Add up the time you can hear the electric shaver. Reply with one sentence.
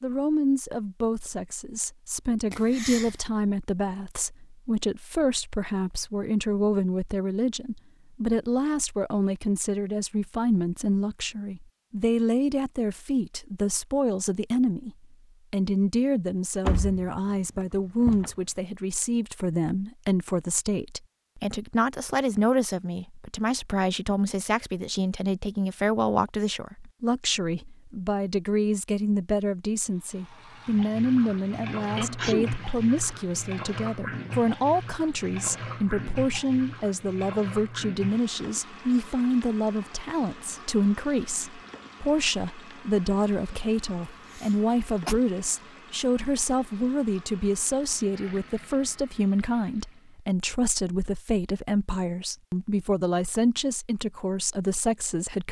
You can't hear the electric shaver here.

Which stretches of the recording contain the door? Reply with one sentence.
You can hear the door from 16.6 to 18.3 s.